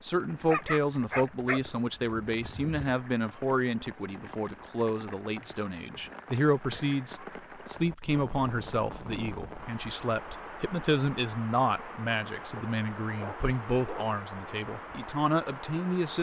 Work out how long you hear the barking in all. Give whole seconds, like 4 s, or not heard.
4 s.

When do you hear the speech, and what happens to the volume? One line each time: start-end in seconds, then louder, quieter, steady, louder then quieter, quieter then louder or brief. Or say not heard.
0.0-16.1 steady.